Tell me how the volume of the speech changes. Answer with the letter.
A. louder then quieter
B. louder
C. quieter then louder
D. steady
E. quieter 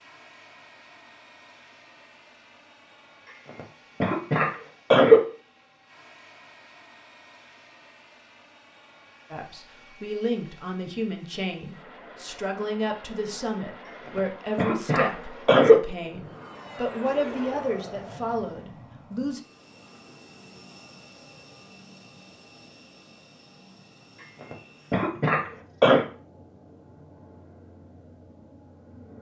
D.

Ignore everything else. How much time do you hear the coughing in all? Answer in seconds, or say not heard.
6 s.